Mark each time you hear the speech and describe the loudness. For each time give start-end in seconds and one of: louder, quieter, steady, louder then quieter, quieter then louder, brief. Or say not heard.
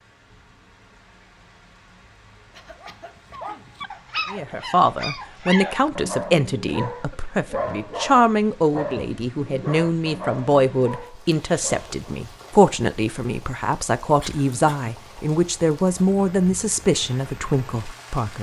4.3-18.3 steady.